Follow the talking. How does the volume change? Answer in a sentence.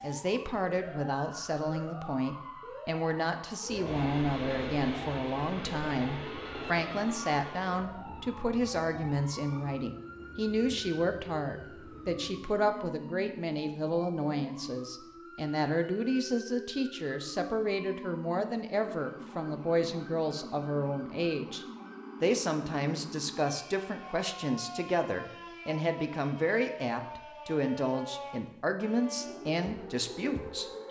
The volume of the talking stays about the same.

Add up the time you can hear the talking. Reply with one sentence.
You can hear the talking for 31 seconds altogether.